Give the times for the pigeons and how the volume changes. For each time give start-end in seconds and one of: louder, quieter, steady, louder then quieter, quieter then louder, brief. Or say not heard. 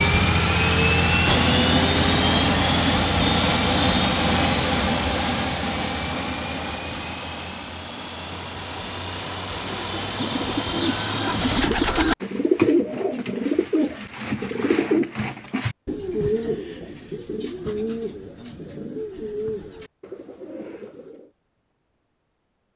9.6-21.3 quieter.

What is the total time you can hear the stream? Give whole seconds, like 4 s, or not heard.
not heard.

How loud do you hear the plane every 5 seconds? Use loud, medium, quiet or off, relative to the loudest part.
loud, medium, medium, off, off.